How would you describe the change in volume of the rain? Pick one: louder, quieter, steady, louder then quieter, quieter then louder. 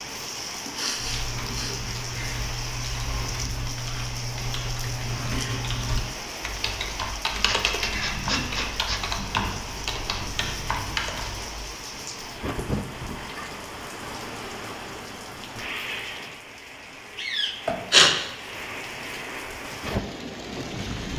steady.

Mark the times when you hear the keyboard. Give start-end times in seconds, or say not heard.
0.9-11.4.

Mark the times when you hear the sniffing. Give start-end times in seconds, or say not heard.
0.5-2.4, 7.5-9.0, 17.6-18.1.